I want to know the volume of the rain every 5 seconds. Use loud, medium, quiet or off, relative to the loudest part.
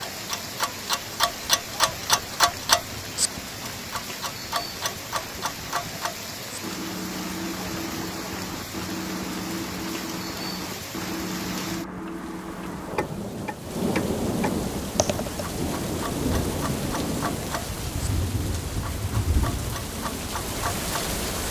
medium, medium, loud, loud, loud.